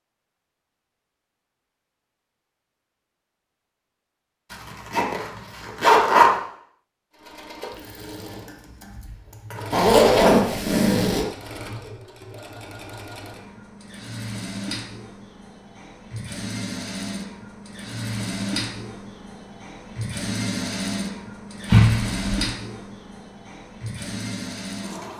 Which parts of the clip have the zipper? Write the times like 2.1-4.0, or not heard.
4.5-6.3, 9.7-11.2, 21.6-22.2.